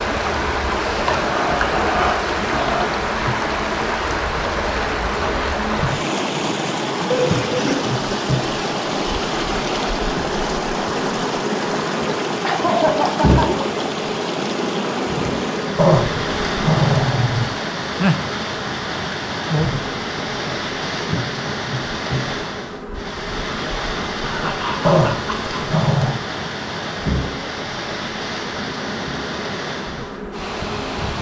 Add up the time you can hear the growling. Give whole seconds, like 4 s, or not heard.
5 s.